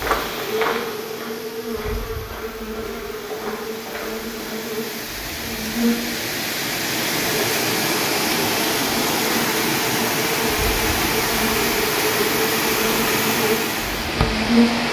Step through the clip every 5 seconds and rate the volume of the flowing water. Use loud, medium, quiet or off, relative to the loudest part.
quiet, loud, loud.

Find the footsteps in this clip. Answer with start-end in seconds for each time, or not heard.
0.0-4.7.